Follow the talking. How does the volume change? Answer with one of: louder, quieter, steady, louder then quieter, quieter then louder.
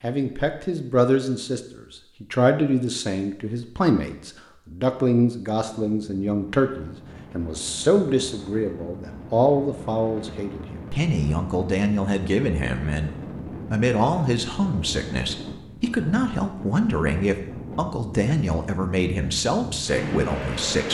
steady.